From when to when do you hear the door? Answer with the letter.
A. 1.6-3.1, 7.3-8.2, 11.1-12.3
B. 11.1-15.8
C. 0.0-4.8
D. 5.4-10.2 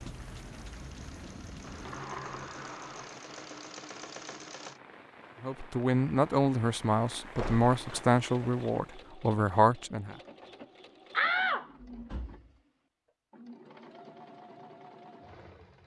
A.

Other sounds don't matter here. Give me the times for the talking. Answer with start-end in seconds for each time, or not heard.
5.4-10.2.